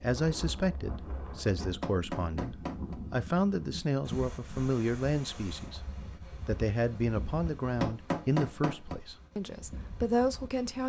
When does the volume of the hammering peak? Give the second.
8 s.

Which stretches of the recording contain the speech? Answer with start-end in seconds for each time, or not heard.
0.0-10.8.